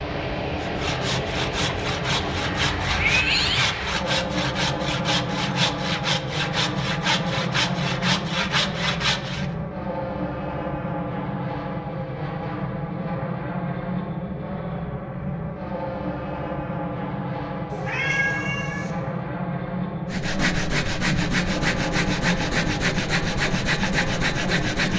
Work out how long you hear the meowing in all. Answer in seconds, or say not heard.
3 s.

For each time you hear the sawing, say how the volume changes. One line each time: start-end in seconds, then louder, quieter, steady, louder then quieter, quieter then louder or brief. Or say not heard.
0.6-9.5 steady
20.1-24.9 steady.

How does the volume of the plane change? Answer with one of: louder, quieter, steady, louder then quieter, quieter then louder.
steady.